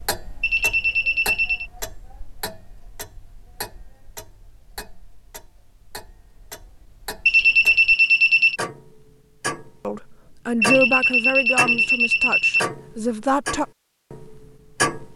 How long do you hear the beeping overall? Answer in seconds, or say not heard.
5 s.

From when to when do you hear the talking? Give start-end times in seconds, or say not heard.
9.8-13.7.